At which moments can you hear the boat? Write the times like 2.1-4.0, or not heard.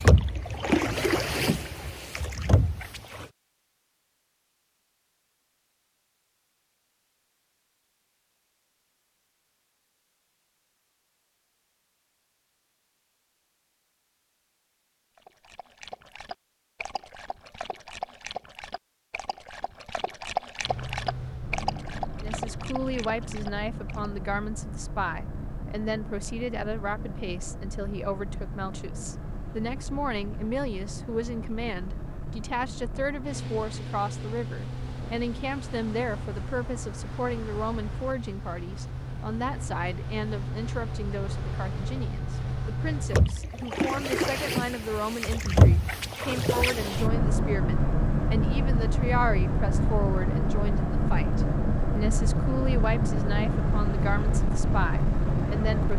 0.0-3.3, 20.6-55.9.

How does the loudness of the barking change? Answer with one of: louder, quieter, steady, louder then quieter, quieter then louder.
louder then quieter.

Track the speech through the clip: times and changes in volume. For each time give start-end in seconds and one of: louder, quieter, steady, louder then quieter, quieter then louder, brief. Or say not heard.
22.1-55.9 steady.